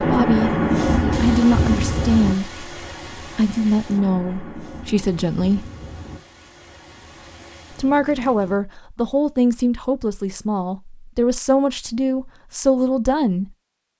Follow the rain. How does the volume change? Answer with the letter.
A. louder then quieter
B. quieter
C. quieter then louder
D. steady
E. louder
B.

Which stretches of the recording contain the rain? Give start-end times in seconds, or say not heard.
0.0-8.6.